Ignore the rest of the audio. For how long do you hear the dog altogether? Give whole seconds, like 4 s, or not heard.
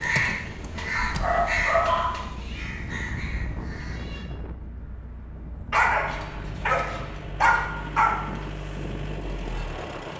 4 s.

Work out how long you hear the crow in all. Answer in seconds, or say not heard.
4 s.